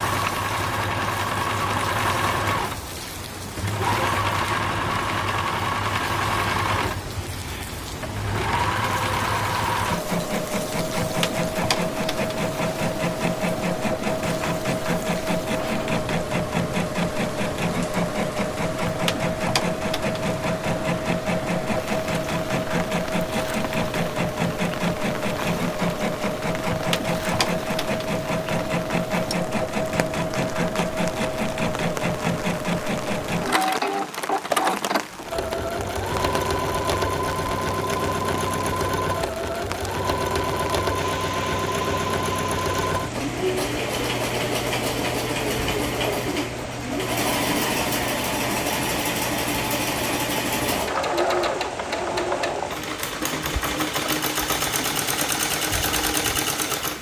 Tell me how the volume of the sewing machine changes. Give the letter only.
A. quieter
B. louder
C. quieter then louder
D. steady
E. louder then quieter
D.